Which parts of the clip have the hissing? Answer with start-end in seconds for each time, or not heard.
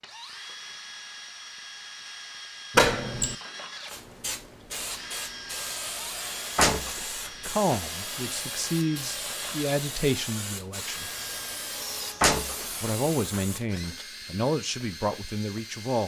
3.9-13.7.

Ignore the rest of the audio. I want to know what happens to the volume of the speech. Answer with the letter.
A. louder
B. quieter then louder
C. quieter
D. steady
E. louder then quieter
D.